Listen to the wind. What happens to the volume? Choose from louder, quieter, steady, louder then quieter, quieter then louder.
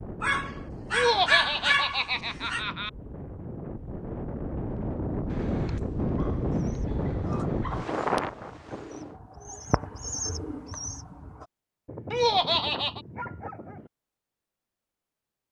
louder.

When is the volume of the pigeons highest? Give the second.
10 s.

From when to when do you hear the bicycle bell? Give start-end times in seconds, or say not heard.
not heard.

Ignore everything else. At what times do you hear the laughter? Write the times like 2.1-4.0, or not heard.
0.9-2.9, 12.1-13.0.